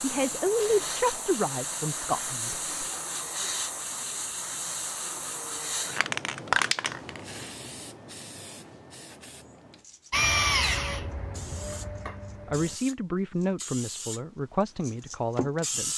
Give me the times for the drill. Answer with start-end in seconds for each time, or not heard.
10.1-12.8.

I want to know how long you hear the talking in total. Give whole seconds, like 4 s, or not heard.
6 s.